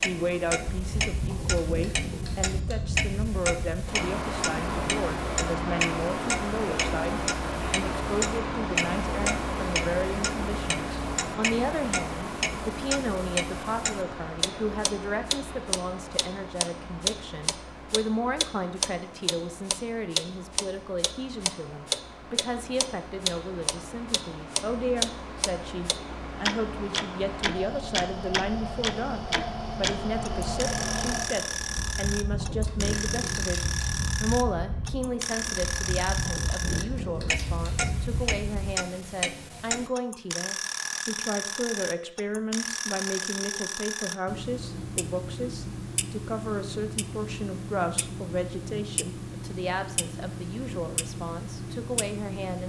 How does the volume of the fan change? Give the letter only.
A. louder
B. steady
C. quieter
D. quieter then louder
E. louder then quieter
D.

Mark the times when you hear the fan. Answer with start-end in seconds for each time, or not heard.
0.0-38.8.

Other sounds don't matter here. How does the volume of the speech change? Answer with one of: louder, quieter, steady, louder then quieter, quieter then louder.
steady.